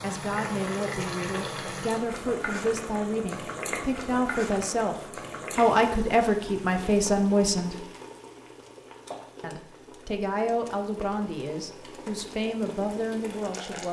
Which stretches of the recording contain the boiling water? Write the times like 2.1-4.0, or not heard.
0.0-13.8.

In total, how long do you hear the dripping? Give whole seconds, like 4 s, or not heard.
not heard.